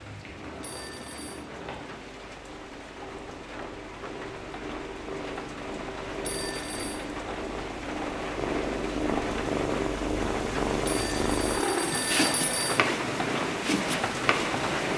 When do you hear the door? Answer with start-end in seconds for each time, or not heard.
not heard.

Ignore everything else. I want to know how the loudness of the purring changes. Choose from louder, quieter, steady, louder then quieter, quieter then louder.
louder.